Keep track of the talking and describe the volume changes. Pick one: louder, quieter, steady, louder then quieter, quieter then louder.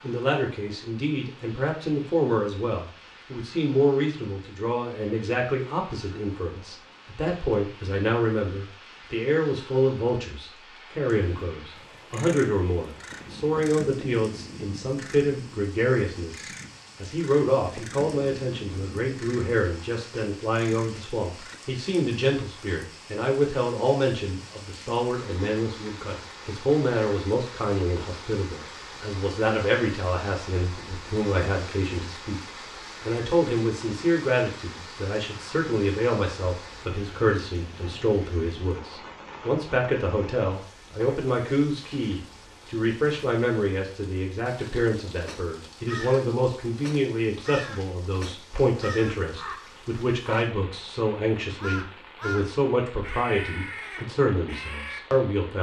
steady.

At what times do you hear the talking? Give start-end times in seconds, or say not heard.
0.0-55.5.